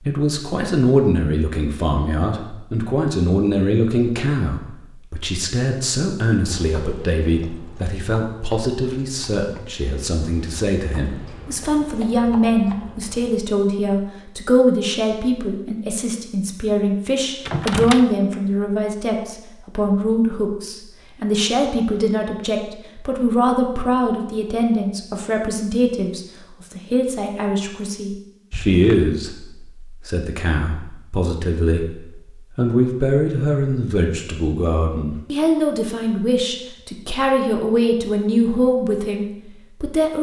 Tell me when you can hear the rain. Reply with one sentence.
The rain can't be heard in this clip.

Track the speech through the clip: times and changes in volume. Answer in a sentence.
The speech can be heard from 0.1 to 40.1 s, at a steady volume.